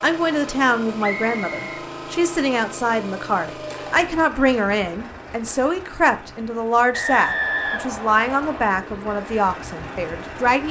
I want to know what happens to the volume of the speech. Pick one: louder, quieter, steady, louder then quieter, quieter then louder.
steady.